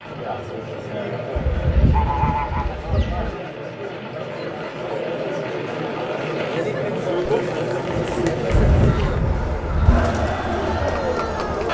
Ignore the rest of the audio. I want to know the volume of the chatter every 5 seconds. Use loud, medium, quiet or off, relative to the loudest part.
medium, loud, loud.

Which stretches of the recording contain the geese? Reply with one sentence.
The geese can be heard from 1.4 to 3.4 s and from 8.5 to 10.2 s.